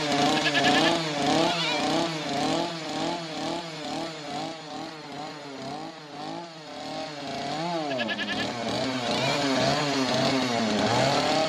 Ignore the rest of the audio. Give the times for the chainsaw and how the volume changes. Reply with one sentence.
The chainsaw can be heard from 0.0 to 11.4 s, getting quieter then louder.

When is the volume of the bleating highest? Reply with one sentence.
The volume of the bleating peaks at 1 second.